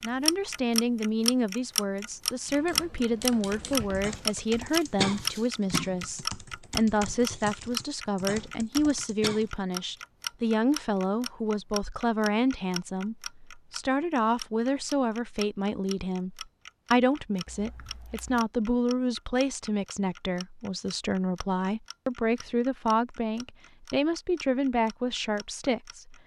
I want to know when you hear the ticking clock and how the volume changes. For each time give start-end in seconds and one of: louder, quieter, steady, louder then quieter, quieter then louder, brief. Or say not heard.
0.0-26.2 quieter.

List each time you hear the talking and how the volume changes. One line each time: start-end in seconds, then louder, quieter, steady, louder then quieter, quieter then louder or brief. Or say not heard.
0.0-26.1 steady.